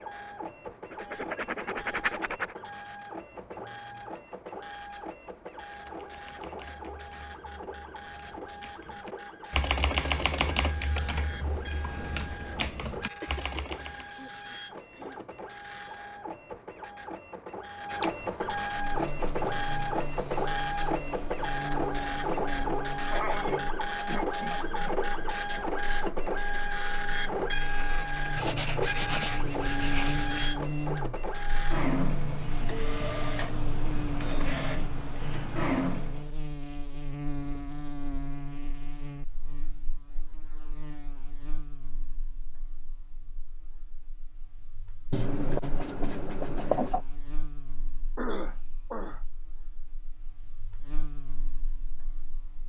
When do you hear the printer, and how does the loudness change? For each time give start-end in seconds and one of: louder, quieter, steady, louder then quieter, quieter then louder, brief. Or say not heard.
0.0-36.3 louder.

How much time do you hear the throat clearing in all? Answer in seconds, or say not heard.
5 s.